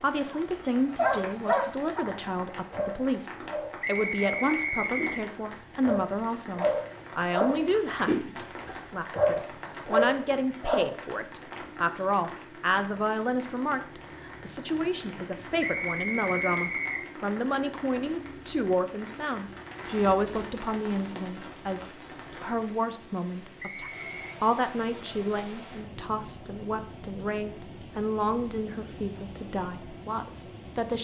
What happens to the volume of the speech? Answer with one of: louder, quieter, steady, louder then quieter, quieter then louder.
steady.